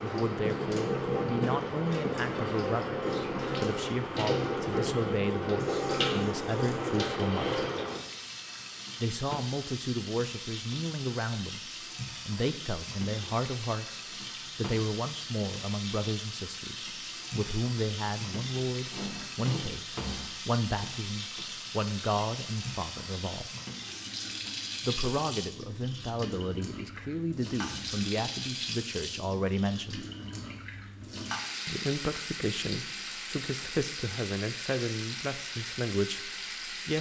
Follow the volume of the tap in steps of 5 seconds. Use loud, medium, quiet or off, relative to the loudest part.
loud, loud, medium, medium, medium, medium, medium, medium.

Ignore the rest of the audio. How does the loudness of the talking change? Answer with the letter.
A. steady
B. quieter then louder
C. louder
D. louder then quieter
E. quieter
A.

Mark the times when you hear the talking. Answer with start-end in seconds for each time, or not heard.
0.0-7.6, 9.0-23.5, 24.8-30.1, 31.6-36.9.